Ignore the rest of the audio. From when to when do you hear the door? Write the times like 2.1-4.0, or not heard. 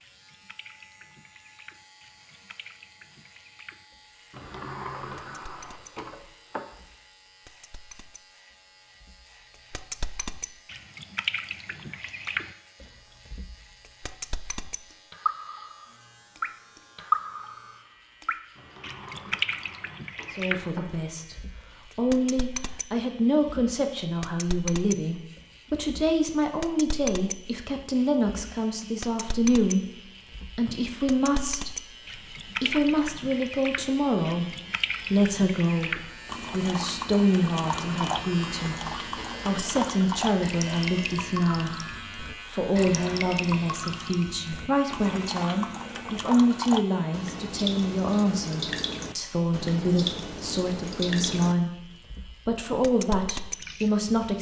4.3-6.7, 18.6-21.1, 37.8-40.0.